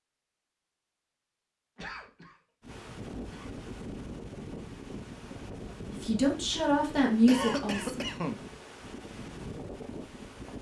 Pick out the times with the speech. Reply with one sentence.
You can hear the speech from 5.9 to 8.1 s.